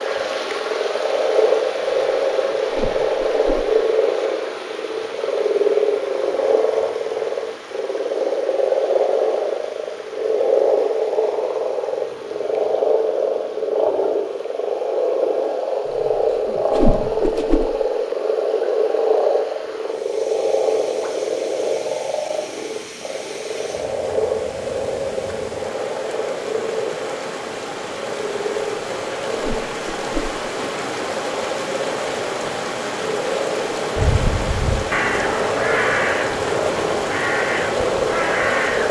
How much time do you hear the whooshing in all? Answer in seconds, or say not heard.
4 s.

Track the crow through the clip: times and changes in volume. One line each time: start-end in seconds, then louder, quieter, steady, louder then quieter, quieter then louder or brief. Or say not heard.
34.0-38.8 steady.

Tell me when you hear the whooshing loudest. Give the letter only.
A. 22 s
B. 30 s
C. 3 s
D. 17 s
D.